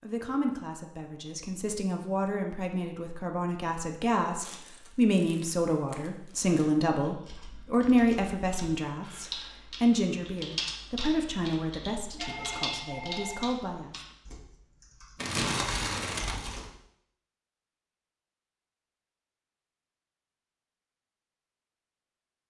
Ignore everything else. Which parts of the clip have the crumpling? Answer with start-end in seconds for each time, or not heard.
4.4-6.5, 15.2-16.6.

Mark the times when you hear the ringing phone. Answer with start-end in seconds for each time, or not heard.
12.1-13.5.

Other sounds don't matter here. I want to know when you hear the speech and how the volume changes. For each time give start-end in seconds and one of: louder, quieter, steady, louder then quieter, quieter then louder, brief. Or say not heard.
0.0-14.0 louder then quieter.